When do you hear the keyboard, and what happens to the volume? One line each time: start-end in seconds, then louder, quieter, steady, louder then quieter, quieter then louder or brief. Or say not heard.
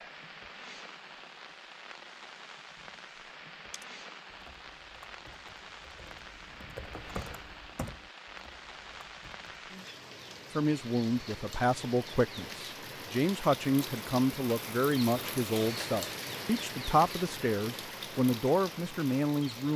3.7-9.7 louder then quieter.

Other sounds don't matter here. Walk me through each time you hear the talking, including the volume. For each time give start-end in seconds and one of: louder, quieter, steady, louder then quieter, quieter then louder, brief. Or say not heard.
10.6-19.7 steady.